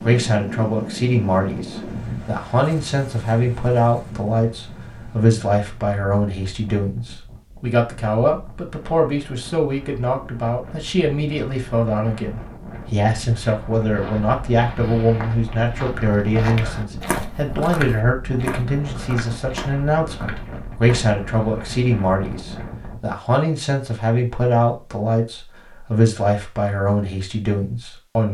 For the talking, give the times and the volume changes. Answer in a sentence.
The talking can be heard from 0.0 to 28.2 s, at a steady volume.